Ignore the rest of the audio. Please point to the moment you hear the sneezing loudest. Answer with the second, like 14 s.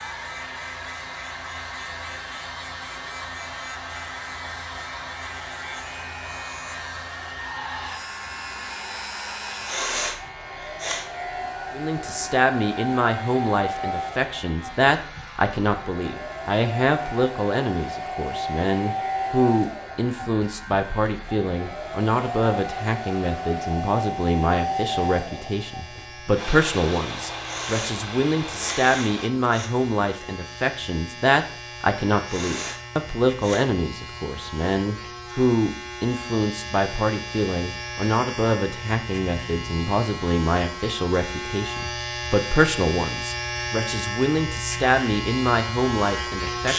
10 s.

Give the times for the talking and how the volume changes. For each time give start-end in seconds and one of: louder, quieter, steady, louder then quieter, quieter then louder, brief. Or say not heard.
11.7-46.7 steady.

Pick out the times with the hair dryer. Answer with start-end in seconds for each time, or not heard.
0.0-29.3.